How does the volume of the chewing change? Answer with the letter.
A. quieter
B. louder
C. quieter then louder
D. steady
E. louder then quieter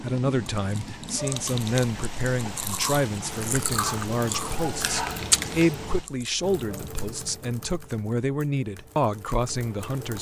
E.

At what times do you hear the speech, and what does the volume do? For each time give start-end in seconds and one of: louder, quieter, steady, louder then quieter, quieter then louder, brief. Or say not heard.
0.0-10.1 steady.